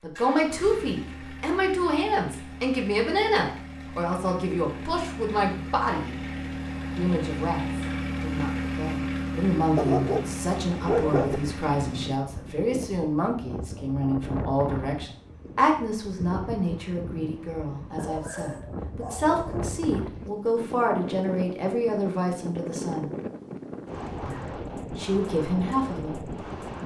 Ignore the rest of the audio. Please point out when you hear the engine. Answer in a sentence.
You can hear the engine from 0.1 to 12.1 s.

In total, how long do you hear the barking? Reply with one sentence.
The barking can be heard for 3 seconds in total.